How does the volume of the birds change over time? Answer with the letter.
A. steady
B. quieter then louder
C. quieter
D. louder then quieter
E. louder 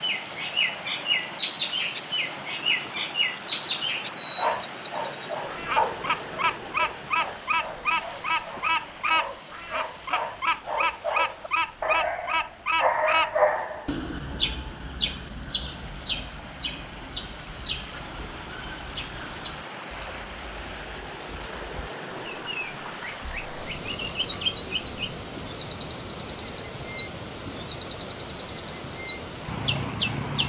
B.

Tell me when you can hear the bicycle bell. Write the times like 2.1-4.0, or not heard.
23.8-24.8.